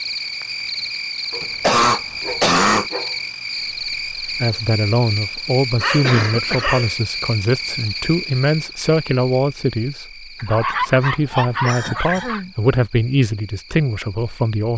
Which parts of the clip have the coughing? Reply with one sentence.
The coughing can be heard from 1.4 to 2.9 s, from 6.0 to 6.8 s and from 11.6 to 12.6 s.